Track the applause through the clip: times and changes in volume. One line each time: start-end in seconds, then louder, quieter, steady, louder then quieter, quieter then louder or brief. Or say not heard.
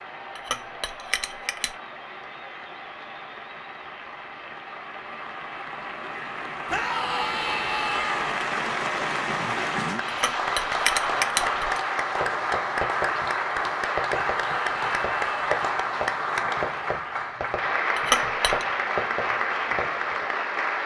0.0-20.8 louder.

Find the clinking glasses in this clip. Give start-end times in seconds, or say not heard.
0.3-1.8, 10.1-11.8, 17.9-18.6.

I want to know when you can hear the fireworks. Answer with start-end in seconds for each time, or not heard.
9.9-20.2.